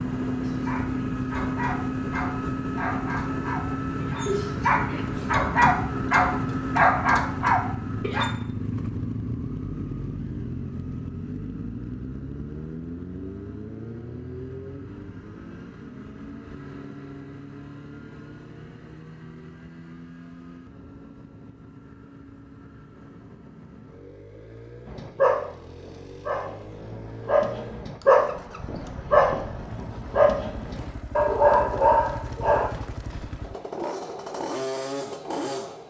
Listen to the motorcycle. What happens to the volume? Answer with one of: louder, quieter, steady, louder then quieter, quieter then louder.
quieter then louder.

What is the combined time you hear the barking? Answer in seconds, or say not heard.
16 s.